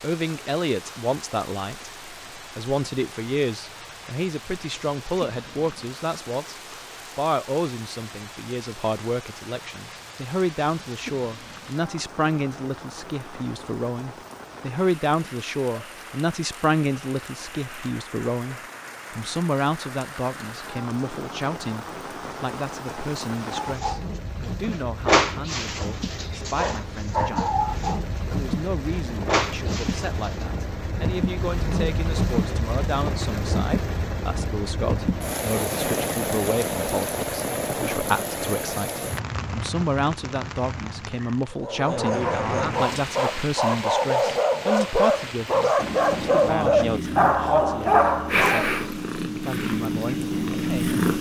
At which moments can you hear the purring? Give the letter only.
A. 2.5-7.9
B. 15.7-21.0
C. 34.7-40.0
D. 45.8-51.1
D.